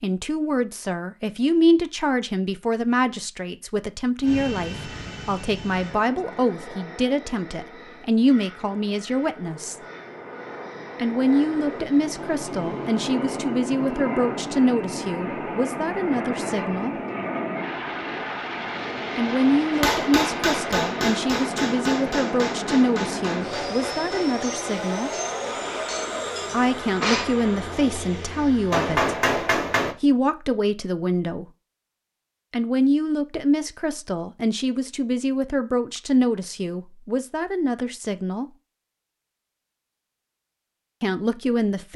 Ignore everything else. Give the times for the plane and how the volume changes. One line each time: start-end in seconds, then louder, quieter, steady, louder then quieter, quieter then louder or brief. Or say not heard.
4.2-28.9 louder.